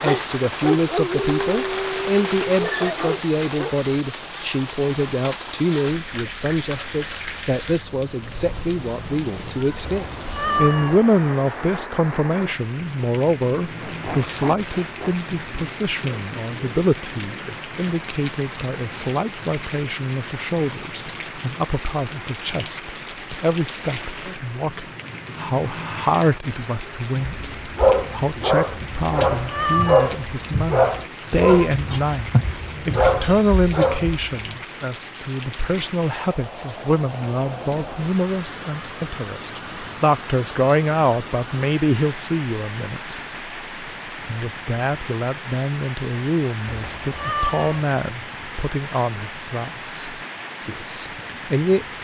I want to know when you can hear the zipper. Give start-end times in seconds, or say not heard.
13.8-15.2.